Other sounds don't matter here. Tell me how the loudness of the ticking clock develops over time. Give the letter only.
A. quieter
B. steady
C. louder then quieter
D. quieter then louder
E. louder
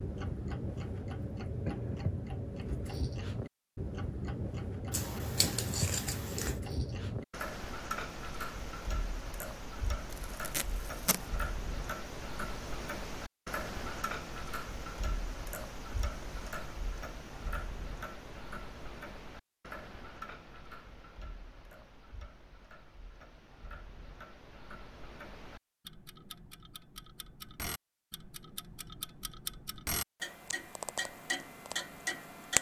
D.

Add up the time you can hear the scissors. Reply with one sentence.
The scissors can be heard for 2 seconds in total.